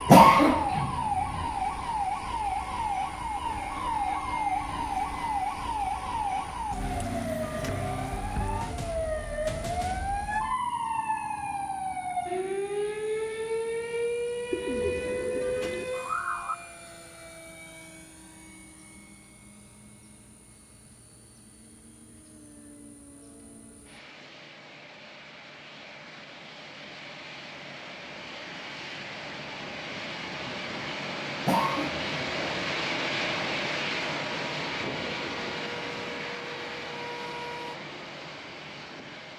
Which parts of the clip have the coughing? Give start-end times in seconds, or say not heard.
0.1-1.4, 31.4-32.1.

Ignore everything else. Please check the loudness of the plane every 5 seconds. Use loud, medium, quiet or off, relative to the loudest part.
quiet, quiet, quiet, quiet, quiet, medium, loud, medium.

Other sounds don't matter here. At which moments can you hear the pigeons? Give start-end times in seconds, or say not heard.
14.5-15.8.